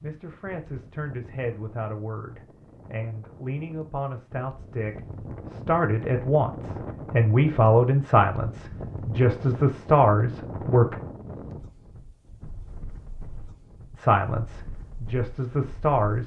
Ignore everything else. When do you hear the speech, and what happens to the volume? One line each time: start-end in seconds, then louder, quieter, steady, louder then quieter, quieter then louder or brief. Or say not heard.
0.0-10.9 louder
13.9-16.2 brief.